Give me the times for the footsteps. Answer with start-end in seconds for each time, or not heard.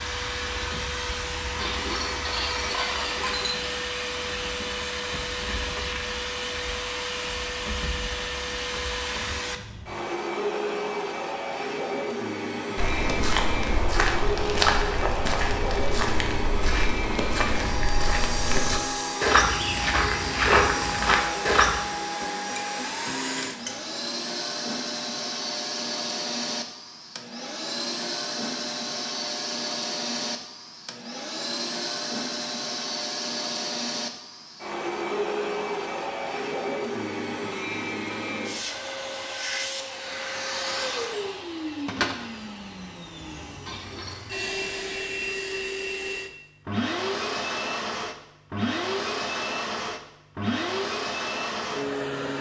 12.8-21.9.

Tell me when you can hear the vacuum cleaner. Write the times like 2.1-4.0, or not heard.
0.0-52.3.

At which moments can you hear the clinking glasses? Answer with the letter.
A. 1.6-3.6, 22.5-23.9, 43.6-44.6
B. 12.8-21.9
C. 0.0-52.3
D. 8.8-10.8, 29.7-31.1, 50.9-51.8
A.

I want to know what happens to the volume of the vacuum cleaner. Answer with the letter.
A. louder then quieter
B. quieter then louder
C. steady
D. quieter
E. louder
C.